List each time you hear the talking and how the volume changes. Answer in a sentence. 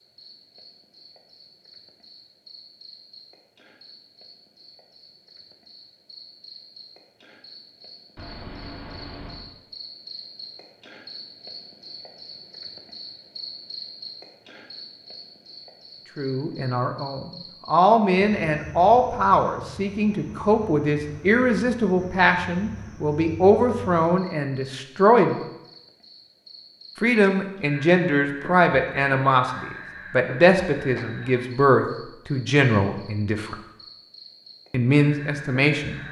You can hear the talking from 16.1 to 25.4 s, at a steady volume; from 26.9 to 33.5 s, at a steady volume; and briefly from 34.7 to 36.0 s.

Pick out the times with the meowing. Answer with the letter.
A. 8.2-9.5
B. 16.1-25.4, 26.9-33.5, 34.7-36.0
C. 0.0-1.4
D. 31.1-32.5
A.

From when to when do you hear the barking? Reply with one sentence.
The barking can't be heard in this clip.